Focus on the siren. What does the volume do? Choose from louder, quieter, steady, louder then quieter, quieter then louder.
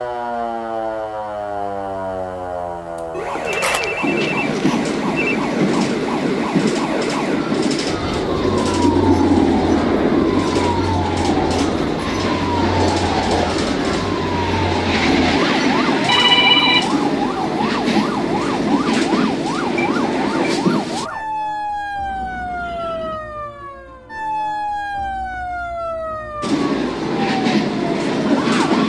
steady.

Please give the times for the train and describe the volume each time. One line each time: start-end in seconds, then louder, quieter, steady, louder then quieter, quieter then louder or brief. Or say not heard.
4.0-21.1 steady
26.4-28.8 brief.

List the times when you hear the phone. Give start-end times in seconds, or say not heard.
3.5-5.3, 16.1-17.0, 22.1-23.2.